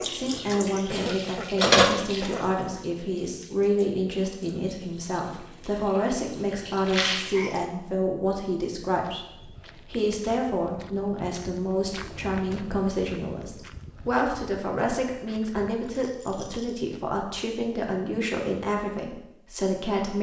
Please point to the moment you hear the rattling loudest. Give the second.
7 s.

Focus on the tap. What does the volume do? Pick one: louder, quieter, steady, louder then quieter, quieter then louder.
quieter then louder.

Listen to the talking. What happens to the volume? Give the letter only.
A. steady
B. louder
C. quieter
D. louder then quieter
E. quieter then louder
A.